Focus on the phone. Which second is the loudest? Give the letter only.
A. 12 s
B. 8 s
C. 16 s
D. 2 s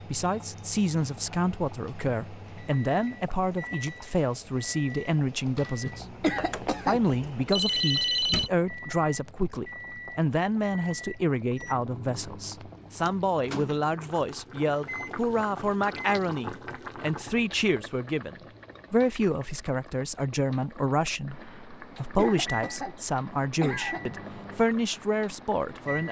B.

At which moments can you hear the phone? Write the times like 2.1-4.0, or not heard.
6.3-8.5.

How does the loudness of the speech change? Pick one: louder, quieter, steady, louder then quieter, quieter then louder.
steady.